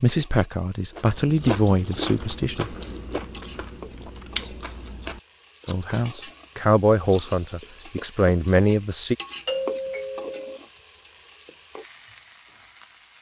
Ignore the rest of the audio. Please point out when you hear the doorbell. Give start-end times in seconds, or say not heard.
9.4-10.6.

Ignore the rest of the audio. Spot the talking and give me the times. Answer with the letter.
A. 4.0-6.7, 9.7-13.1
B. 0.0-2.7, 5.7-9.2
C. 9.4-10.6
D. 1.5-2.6
B.